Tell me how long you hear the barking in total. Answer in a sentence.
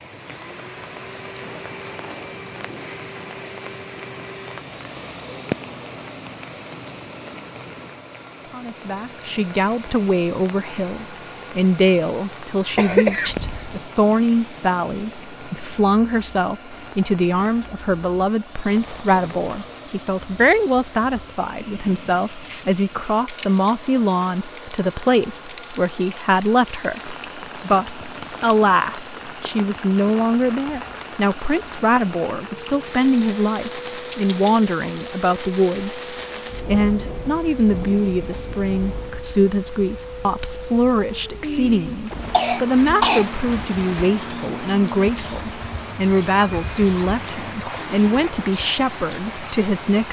The barking can't be heard in this clip.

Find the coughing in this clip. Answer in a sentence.
You can hear the coughing from 12.8 to 13.8 s and from 41.4 to 43.2 s.